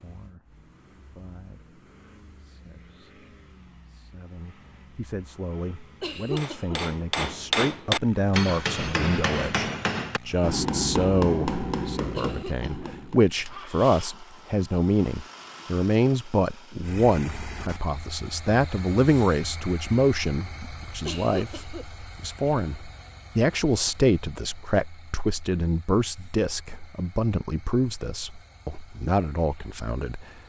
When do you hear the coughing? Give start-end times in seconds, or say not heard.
6.0-6.8, 12.1-12.9, 21.1-21.9.